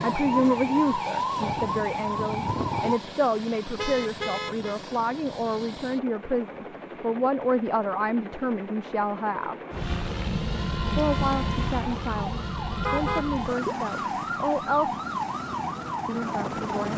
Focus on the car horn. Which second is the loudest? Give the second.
13 s.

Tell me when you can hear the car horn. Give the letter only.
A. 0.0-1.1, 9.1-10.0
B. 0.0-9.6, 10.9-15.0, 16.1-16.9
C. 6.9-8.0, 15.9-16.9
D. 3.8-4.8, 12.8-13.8
D.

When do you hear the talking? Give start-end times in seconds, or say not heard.
0.0-9.6, 10.9-15.0, 16.1-16.9.